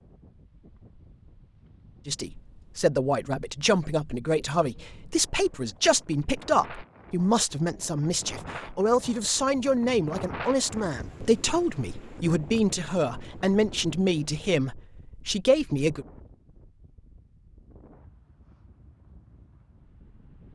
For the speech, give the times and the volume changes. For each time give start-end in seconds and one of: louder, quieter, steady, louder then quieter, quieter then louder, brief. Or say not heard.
2.0-16.1 steady.